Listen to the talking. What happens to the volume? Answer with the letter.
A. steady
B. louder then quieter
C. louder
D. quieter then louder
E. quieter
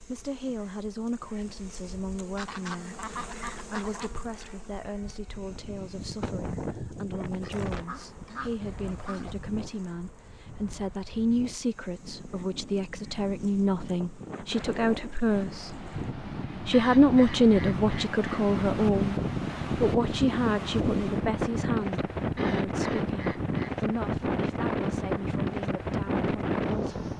B.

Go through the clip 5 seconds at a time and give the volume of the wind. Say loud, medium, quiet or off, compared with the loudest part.
off, medium, quiet, loud, loud, loud.